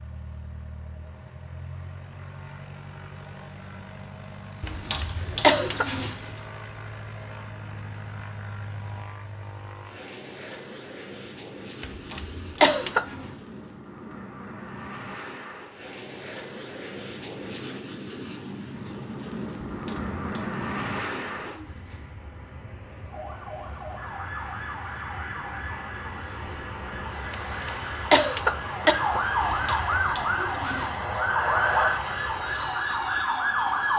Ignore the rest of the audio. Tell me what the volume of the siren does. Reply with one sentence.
The volume of the siren goes up.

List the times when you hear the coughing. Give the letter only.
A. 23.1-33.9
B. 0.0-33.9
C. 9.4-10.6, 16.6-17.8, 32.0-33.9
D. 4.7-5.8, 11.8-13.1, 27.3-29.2
D.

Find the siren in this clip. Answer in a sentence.
The siren can be heard from 23.1 to 33.9 s.